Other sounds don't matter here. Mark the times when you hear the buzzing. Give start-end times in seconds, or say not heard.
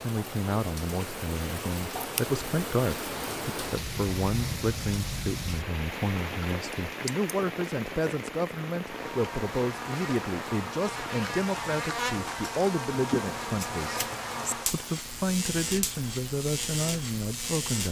8.8-17.8.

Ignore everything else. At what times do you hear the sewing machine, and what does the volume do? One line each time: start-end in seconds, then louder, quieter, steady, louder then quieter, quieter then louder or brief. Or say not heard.
not heard.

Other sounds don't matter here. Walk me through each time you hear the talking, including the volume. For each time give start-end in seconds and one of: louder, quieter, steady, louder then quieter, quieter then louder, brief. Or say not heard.
0.0-17.8 steady.